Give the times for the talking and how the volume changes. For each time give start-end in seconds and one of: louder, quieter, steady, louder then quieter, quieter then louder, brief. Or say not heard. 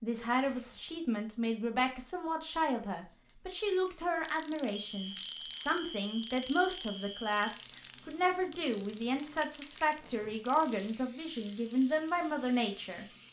0.0-13.1 steady.